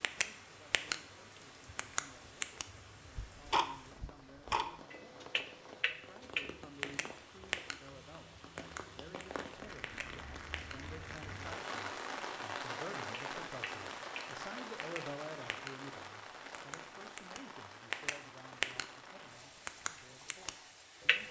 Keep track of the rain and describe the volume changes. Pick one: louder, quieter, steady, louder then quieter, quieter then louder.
louder then quieter.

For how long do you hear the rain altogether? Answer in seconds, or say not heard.
21 s.